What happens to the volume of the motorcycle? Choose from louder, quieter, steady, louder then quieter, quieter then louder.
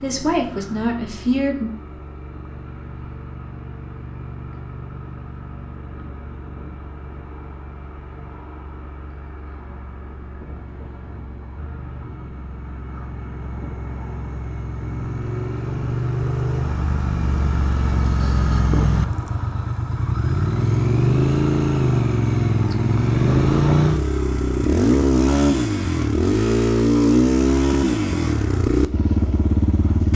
louder.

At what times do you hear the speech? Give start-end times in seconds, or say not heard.
0.0-1.7.